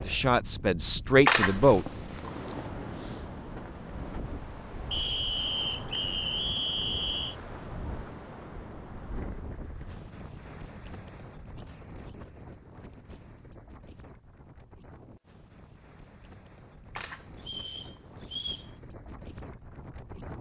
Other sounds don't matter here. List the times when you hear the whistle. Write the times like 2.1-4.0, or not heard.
4.9-7.3, 17.4-18.6.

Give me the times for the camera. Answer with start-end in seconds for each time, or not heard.
1.2-2.6, 16.9-18.4.